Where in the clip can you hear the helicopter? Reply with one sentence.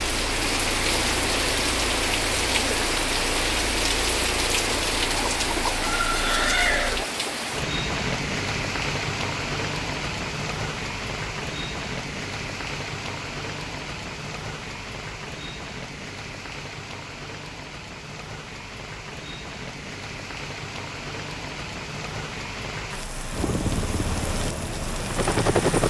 The helicopter can be heard from 0.0 to 7.0 s and from 23.3 to 25.8 s.